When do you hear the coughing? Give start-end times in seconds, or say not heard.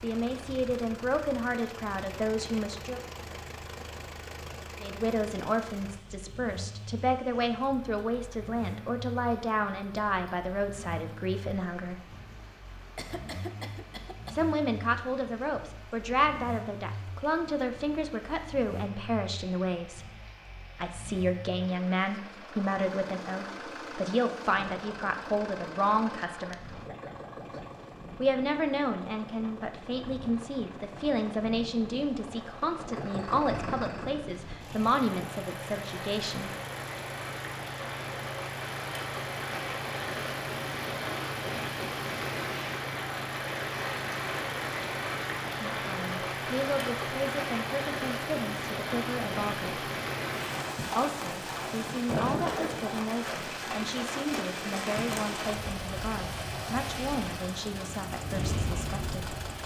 12.9-14.3.